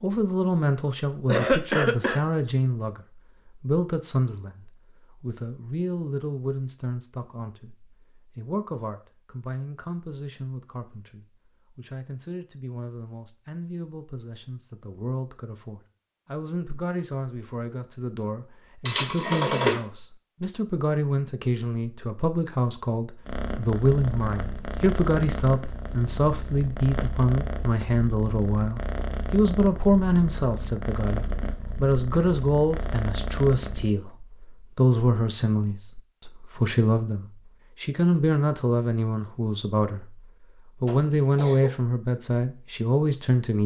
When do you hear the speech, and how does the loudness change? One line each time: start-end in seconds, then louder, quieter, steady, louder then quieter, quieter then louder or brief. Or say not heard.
0.0-40.2 quieter then louder
40.8-43.6 brief.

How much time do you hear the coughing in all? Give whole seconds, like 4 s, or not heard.
2 s.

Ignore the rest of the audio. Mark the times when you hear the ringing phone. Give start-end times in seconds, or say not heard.
18.9-19.8.